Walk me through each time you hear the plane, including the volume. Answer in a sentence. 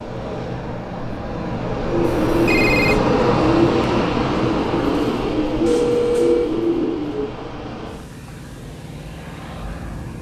You can hear the plane from 0.0 to 10.1 s, getting louder then quieter.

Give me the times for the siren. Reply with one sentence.
You can't hear the siren here.